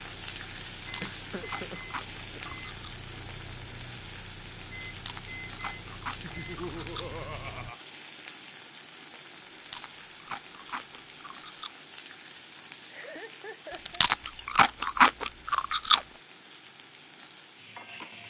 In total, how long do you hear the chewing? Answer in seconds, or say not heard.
9 s.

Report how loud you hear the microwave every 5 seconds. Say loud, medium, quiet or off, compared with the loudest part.
loud, loud, off, off.